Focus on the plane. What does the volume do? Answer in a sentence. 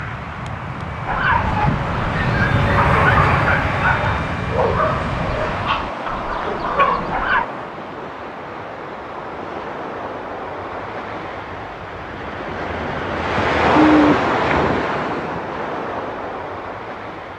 The volume of the plane goes up, then down.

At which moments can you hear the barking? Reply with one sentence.
The barking can be heard from 1.1 to 7.5 s.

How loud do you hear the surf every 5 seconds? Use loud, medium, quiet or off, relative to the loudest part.
quiet, medium, loud, medium.